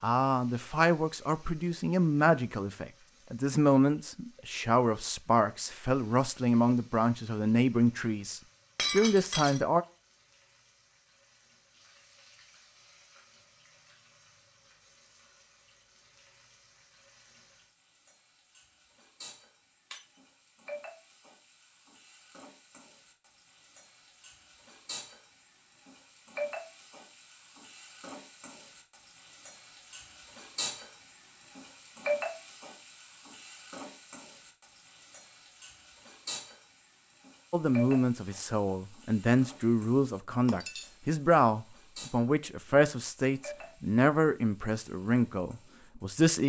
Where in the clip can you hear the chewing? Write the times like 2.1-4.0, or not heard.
not heard.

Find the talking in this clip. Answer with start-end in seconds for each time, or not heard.
0.0-9.8, 37.5-46.4.